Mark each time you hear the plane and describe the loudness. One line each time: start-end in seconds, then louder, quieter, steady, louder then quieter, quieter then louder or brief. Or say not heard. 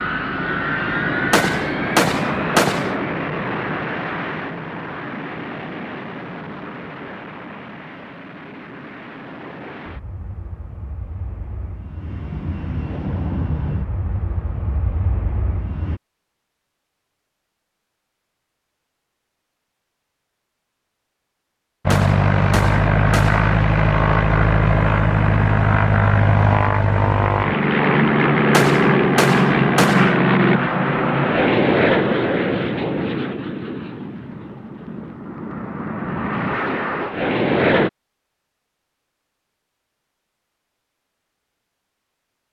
0.0-16.0 quieter then louder
21.9-37.9 quieter.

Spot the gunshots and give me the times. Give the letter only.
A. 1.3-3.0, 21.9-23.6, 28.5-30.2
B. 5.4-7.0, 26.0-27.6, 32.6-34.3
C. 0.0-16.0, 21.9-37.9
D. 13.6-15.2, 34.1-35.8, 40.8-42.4
A.